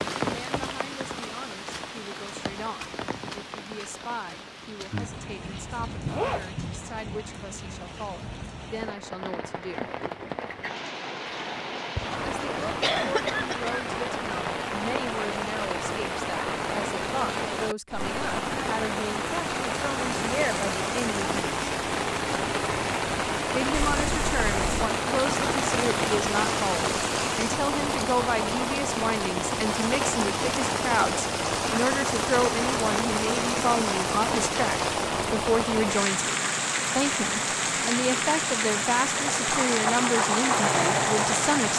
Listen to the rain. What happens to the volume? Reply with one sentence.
The loudness of the rain goes up.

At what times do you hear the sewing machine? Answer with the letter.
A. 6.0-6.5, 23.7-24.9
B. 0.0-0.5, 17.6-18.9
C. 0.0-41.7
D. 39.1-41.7
D.